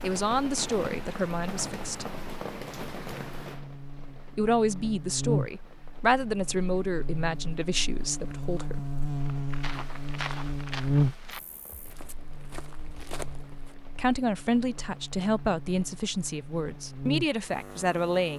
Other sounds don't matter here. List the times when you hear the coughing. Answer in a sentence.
You can't hear the coughing here.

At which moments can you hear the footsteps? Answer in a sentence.
You can hear the footsteps from 9.2 to 13.8 s.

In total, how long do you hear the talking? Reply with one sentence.
The talking can be heard for 11 seconds in total.